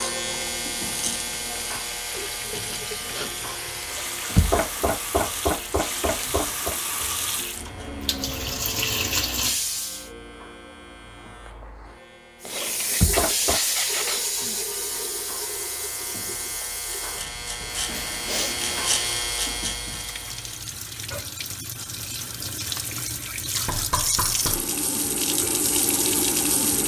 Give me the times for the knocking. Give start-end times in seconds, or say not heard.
4.3-6.8, 13.0-13.6, 23.6-24.7.